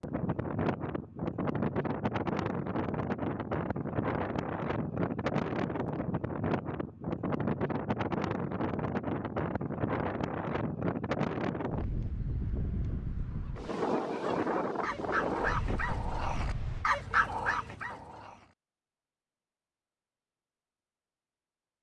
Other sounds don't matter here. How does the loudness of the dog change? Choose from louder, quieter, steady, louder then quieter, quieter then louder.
louder.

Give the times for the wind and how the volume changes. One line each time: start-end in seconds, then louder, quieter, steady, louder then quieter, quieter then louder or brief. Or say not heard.
0.0-16.9 steady.